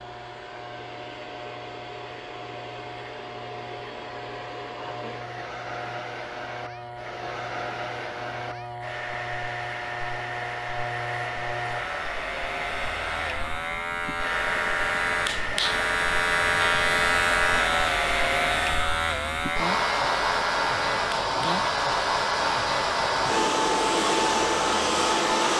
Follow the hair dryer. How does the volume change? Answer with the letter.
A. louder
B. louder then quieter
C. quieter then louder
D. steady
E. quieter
A.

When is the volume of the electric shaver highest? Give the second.
17 s.